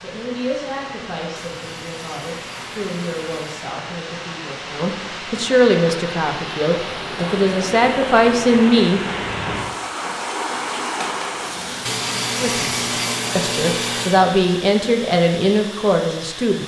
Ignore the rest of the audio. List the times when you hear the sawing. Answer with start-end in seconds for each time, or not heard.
1.4-3.5, 11.8-14.2.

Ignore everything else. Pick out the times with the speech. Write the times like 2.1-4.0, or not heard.
0.0-9.0, 12.4-16.6.